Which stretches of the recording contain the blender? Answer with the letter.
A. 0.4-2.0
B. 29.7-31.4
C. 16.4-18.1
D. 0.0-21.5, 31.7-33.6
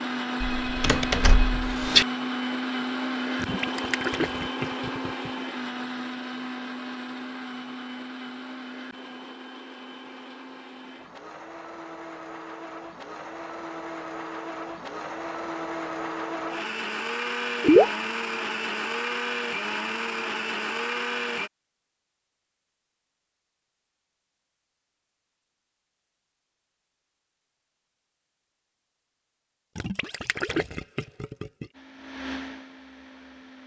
D.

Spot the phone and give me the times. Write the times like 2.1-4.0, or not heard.
0.4-2.0.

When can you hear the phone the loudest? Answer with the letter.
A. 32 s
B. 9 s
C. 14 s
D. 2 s
D.